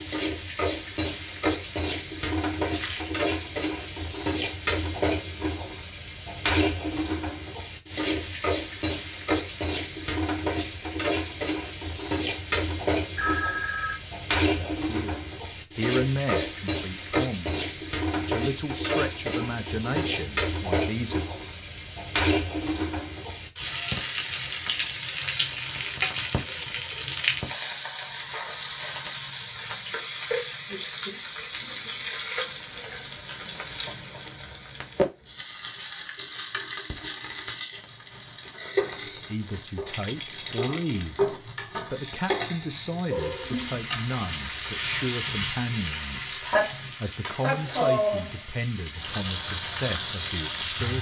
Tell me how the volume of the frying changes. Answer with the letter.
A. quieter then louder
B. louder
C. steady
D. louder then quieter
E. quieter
C.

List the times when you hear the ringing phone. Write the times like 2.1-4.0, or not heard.
13.2-14.0.